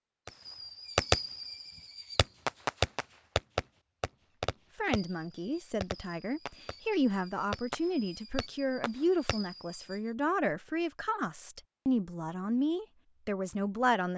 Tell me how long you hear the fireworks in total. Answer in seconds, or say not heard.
10 s.